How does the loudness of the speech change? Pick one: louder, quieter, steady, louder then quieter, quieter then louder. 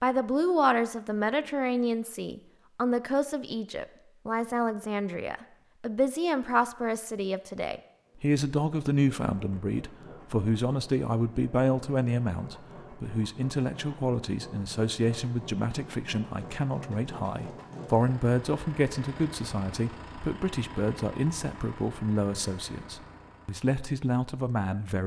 steady.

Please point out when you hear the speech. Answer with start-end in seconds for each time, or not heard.
0.0-25.0.